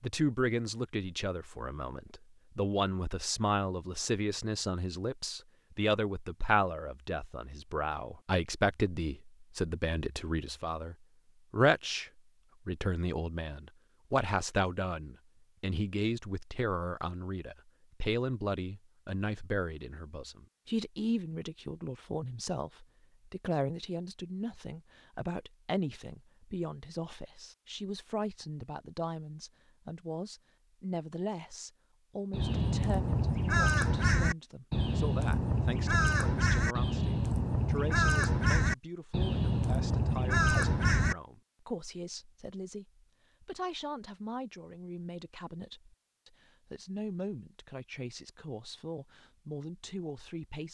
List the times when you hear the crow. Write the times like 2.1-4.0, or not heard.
32.3-41.1.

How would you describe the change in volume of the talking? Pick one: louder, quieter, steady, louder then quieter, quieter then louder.
quieter.